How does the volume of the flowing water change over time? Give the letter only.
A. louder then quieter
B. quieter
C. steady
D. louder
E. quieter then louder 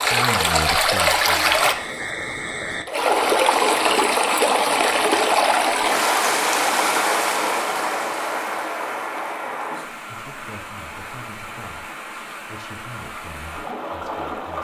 B.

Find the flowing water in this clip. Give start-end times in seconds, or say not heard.
0.0-14.6.